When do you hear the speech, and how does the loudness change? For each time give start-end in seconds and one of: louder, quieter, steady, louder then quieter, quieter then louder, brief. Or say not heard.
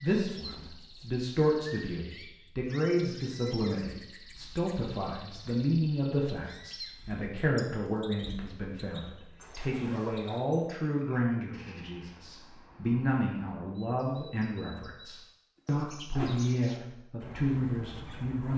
0.0-18.5 steady.